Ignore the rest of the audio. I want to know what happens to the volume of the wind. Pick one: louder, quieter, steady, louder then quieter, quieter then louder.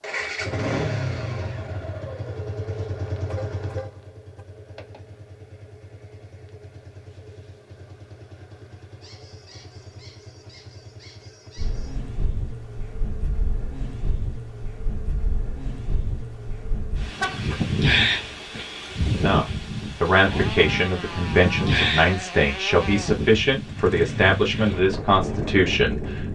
louder then quieter.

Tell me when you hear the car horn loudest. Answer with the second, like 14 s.
17 s.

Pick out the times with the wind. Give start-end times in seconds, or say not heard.
11.6-26.3.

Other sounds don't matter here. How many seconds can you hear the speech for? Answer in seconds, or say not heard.
7 s.